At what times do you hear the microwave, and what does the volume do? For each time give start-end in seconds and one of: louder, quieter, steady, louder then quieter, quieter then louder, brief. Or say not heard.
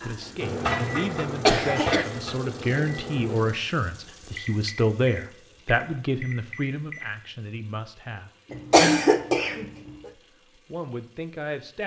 0.0-7.2 quieter.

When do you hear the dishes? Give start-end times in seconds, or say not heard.
not heard.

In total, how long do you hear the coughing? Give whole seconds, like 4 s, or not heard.
2 s.